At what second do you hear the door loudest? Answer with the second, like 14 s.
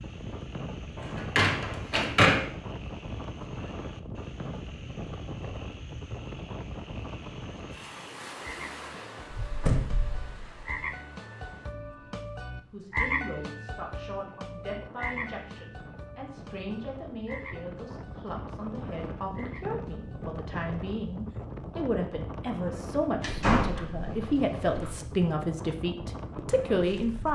2 s.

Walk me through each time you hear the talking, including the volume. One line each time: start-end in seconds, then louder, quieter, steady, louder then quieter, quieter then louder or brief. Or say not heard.
12.7-27.3 louder.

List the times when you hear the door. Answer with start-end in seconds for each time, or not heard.
1.2-2.4, 9.3-10.8, 23.2-24.9.